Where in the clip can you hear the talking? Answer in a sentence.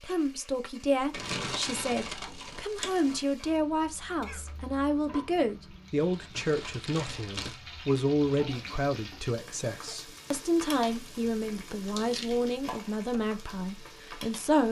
The talking can be heard from 0.0 to 14.6 s.